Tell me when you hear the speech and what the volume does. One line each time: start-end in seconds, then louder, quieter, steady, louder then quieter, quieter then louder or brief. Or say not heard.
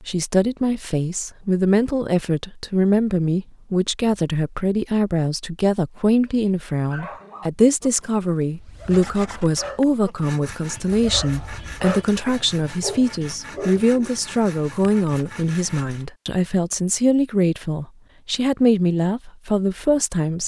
0.0-20.4 steady.